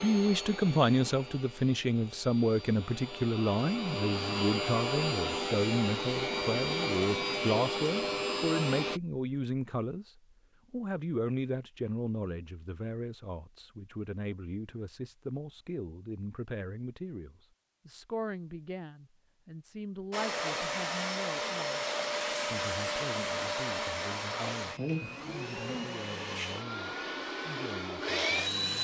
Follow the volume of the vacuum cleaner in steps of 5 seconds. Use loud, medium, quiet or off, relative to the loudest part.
medium, loud, off, off, loud, loud.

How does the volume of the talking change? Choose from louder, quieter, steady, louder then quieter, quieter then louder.
quieter.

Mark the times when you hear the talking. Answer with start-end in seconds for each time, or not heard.
0.0-21.9, 22.4-28.8.